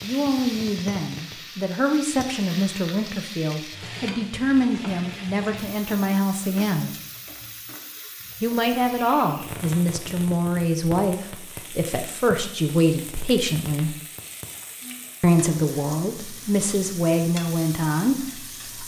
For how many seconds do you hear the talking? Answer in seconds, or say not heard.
16 s.